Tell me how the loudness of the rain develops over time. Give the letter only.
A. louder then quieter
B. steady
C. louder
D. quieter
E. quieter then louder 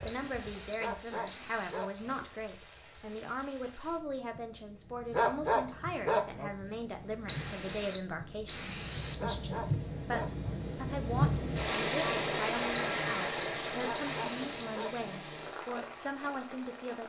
A.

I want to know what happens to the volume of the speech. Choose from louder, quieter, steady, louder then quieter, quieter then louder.
steady.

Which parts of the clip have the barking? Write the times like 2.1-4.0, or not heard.
0.8-2.1, 5.1-6.5, 9.2-10.5, 13.8-15.1.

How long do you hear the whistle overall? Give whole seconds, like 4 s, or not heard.
6 s.